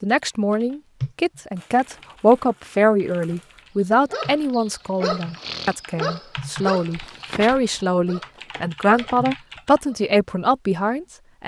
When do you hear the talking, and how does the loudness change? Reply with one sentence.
You can hear the talking from 0.0 to 11.4 s, getting quieter then louder.